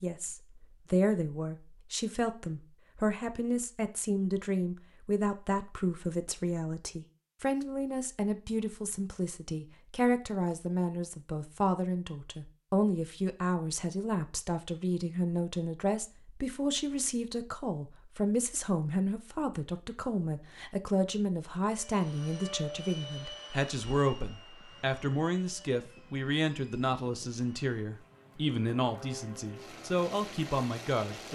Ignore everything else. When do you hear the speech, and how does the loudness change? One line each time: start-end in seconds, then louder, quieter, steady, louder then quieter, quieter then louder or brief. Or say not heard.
0.0-31.3 steady.